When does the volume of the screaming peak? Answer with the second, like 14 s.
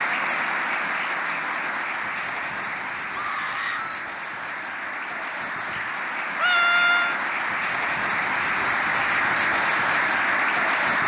7 s.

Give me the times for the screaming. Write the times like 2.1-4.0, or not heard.
3.1-4.0, 6.3-7.2.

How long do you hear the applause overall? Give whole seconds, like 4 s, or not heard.
11 s.